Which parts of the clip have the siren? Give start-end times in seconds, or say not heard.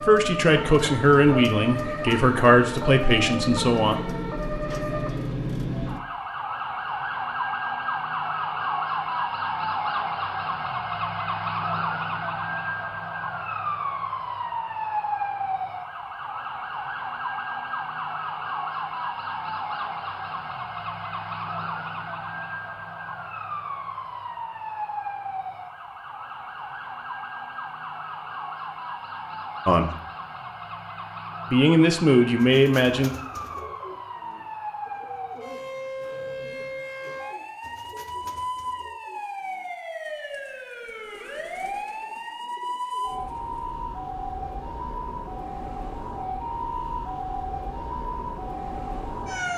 0.0-49.5.